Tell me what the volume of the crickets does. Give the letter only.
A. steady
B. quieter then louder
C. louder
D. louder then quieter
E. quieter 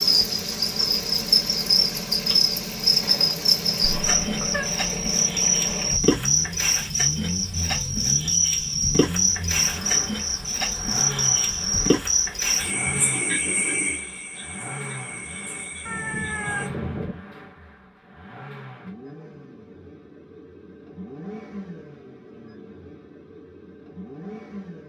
E.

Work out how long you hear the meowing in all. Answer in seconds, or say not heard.
2 s.